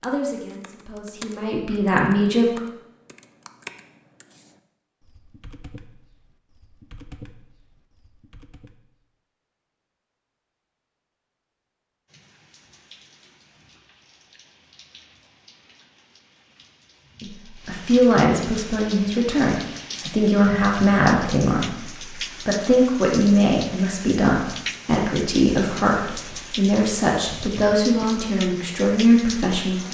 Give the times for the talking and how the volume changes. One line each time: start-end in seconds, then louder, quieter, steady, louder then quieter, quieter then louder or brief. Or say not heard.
0.0-2.6 brief
17.2-29.9 steady.